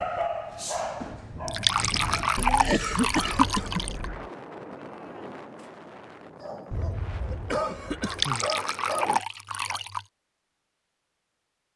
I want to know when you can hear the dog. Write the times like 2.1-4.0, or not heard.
0.0-2.4, 6.4-9.8.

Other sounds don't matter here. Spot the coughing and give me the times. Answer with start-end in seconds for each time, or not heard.
2.4-4.3, 6.7-8.5.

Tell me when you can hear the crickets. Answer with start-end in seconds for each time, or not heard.
not heard.